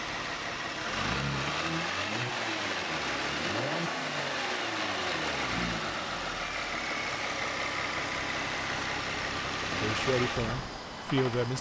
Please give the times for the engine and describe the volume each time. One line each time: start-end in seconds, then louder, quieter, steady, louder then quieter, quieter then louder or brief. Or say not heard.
0.0-11.5 steady.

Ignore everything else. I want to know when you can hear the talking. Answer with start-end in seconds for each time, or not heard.
9.8-11.5.